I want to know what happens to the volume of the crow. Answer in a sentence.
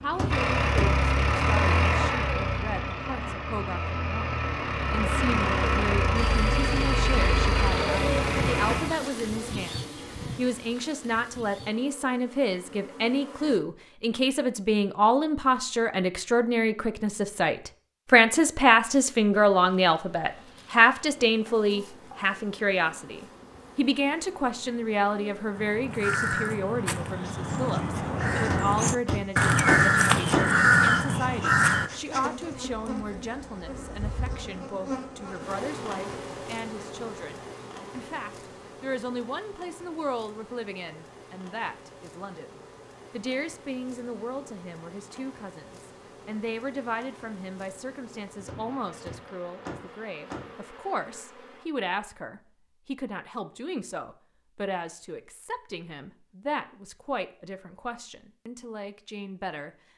The loudness of the crow goes up.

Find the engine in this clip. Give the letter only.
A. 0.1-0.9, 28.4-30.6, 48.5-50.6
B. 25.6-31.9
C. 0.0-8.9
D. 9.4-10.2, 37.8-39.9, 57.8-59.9
C.